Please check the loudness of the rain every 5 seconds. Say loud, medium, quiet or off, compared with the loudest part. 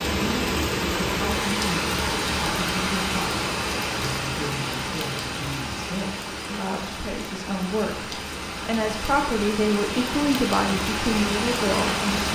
loud, medium, loud.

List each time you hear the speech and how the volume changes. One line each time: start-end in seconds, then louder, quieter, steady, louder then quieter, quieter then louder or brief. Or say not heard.
0.1-12.2 louder.